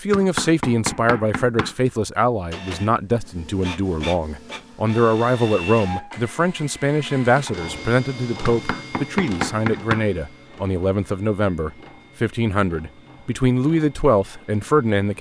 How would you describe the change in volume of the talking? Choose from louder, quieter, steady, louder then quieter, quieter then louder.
steady.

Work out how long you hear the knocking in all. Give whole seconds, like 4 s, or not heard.
3 s.